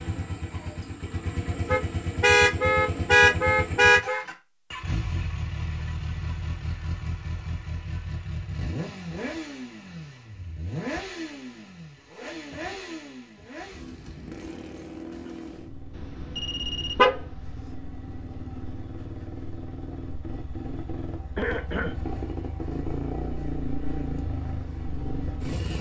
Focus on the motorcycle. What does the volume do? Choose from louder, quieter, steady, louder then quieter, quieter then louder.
quieter then louder.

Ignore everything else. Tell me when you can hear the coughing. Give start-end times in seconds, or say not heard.
21.4-21.9.